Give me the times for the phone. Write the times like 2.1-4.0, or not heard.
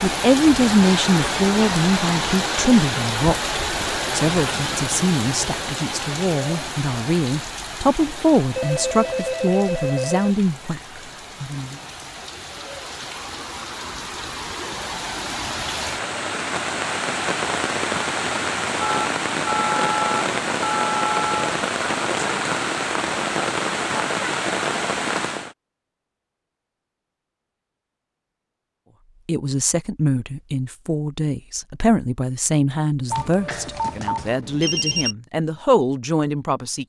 8.6-10.3, 18.8-21.6, 33.1-35.1.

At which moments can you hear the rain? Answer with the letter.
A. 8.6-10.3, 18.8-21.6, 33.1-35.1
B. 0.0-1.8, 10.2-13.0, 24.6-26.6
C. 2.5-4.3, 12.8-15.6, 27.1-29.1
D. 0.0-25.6
D.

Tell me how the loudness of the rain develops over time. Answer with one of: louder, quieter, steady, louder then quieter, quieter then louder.
quieter then louder.